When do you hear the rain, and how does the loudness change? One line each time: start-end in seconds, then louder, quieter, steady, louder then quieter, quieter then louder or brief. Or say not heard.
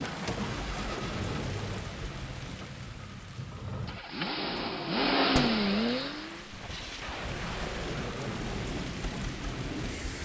0.0-10.2 quieter then louder.